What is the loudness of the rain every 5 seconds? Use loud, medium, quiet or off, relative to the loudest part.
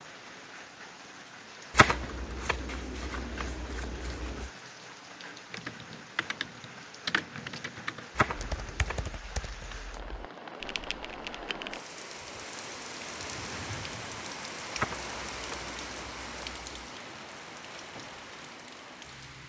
medium, medium, loud, loud.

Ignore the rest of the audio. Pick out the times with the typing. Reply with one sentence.
The typing can be heard from 5.5 to 11.8 s.